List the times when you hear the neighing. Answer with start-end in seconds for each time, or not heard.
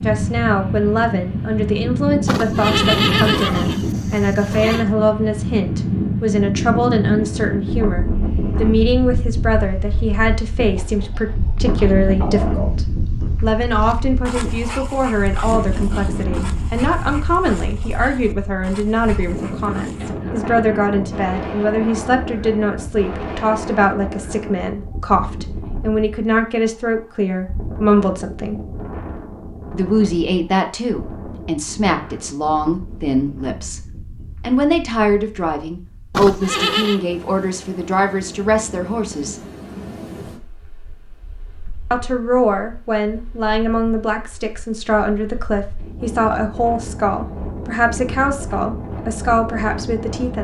2.2-4.8, 36.1-37.0.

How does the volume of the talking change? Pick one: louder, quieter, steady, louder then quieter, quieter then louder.
steady.